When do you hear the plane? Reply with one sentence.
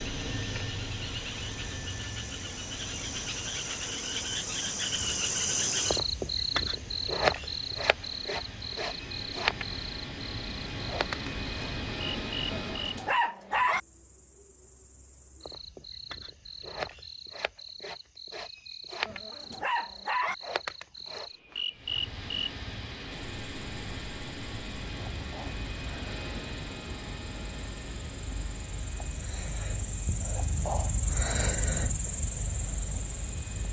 The plane can be heard from 0.0 to 13.2 s and from 21.7 to 33.6 s.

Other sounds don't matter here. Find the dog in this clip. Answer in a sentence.
You can hear the dog from 12.5 to 13.8 s and from 19.1 to 20.4 s.